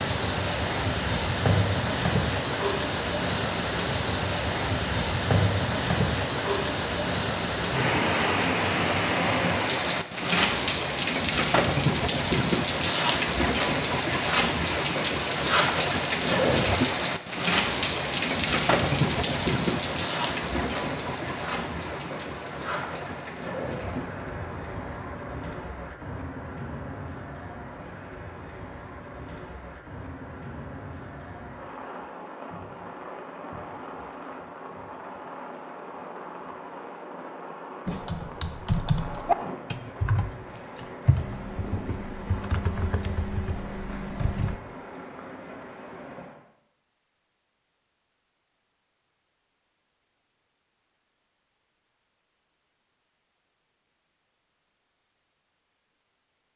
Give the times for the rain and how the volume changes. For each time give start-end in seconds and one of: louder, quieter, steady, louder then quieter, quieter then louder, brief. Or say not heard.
0.0-46.4 quieter.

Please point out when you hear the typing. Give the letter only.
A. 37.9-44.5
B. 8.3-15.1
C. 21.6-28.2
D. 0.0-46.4
A.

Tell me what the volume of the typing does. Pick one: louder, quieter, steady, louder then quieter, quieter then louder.
quieter.